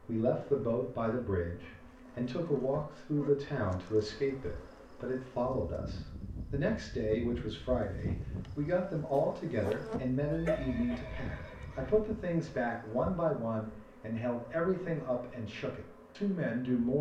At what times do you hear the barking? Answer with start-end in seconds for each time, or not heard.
9.1-11.0.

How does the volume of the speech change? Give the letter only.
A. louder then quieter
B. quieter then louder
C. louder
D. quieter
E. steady
E.